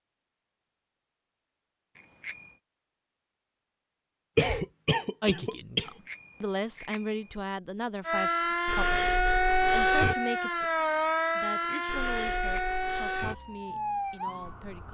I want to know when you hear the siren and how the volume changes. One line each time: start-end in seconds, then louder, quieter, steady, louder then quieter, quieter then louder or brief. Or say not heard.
8.1-14.8 quieter.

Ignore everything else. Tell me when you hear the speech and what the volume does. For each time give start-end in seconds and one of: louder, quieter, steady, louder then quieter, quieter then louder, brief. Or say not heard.
5.2-14.8 quieter.